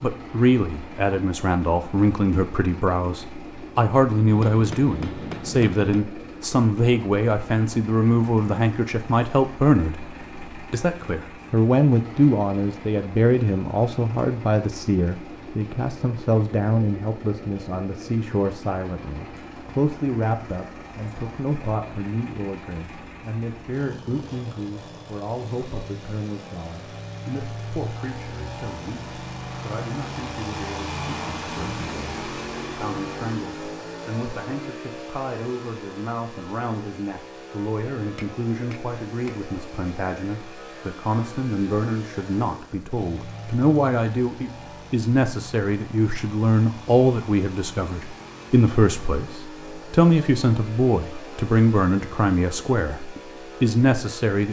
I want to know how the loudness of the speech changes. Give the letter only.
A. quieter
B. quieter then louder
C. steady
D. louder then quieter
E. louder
B.